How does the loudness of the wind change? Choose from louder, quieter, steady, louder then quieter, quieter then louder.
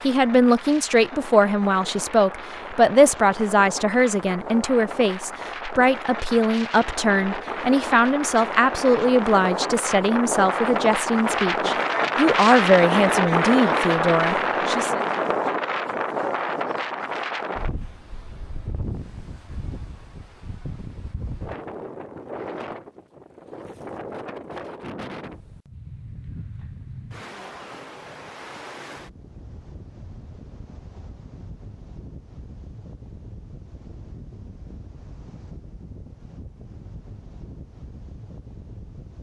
louder then quieter.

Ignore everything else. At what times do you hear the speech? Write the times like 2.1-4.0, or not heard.
0.0-15.1.